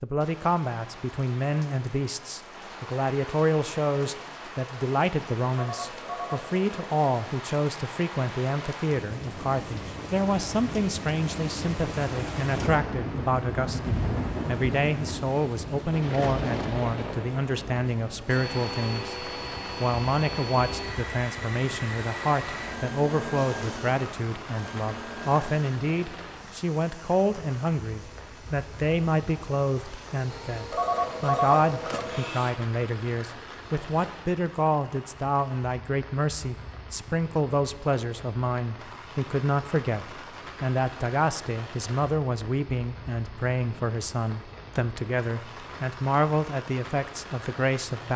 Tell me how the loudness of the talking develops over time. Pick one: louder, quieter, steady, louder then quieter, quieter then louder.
steady.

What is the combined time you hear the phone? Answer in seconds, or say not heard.
3 s.